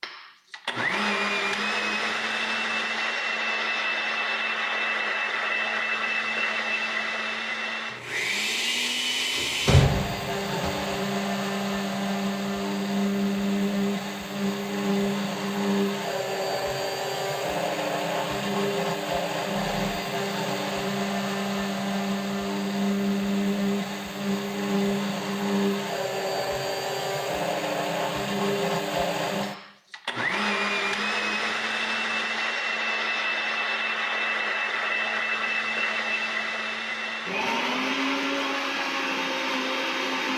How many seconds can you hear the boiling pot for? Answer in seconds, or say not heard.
not heard.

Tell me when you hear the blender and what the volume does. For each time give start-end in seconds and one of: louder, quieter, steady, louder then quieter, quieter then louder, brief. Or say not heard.
0.0-40.3 steady.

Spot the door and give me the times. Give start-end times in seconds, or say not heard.
9.3-10.7.